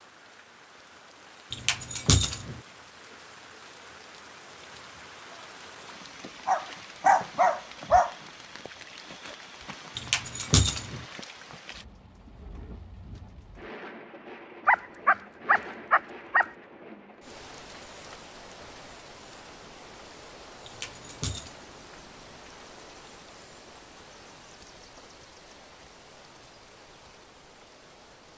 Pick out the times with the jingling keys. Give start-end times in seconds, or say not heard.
1.5-2.5, 9.9-11.0, 20.6-21.5.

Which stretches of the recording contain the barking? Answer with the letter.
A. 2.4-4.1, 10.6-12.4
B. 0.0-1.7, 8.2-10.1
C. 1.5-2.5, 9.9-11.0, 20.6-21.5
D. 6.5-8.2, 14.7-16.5
D.